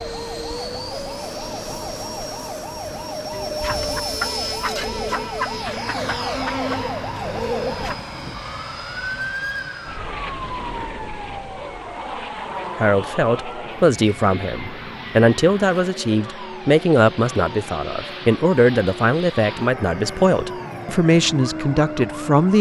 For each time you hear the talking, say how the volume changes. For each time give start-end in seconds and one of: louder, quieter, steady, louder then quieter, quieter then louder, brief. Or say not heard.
12.8-22.5 steady.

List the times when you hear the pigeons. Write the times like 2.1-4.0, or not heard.
3.6-8.0.